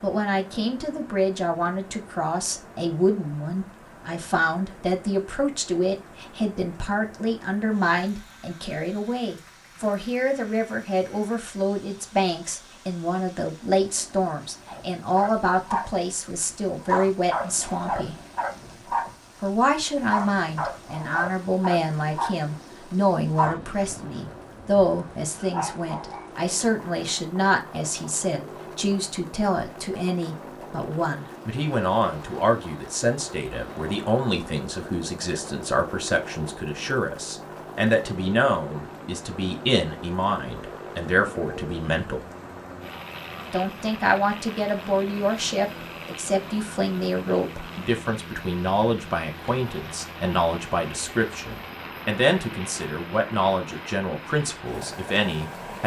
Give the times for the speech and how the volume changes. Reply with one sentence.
The speech can be heard from 0.0 to 18.1 s, at a steady volume; from 19.4 to 42.3 s, at a steady volume; and from 43.5 to 55.8 s, at a steady volume.